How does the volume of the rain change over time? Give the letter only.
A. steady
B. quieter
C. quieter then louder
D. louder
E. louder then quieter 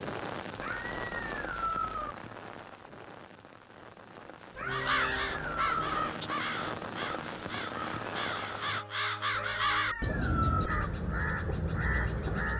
C.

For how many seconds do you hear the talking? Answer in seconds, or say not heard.
not heard.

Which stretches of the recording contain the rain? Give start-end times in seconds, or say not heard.
0.0-8.8.